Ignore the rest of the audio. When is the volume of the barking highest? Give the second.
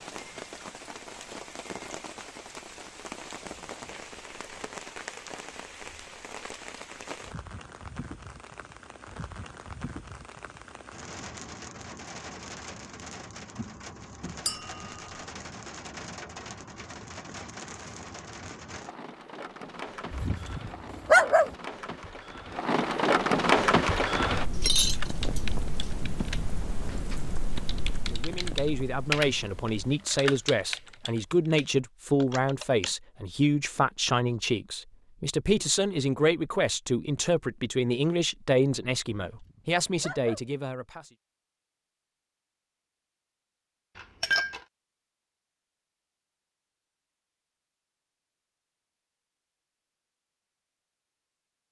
21 s.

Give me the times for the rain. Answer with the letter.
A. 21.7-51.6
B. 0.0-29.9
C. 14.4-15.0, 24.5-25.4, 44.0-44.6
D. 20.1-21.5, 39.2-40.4
B.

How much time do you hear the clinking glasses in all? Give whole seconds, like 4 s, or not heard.
2 s.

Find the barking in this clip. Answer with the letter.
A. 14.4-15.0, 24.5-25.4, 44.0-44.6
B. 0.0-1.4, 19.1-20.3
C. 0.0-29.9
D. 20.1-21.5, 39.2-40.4
D.